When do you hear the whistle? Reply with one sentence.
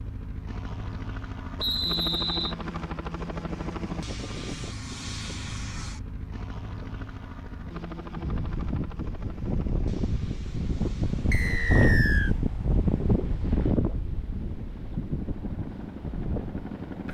The whistle can be heard from 1.6 to 2.5 s and from 11.3 to 12.3 s.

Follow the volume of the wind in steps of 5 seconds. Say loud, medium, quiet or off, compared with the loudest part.
off, medium, loud, medium.